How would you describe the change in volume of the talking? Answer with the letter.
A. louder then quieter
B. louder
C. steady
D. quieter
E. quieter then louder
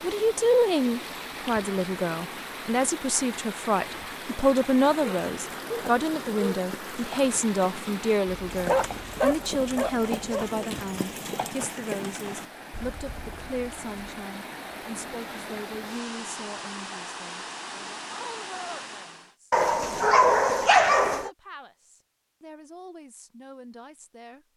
D.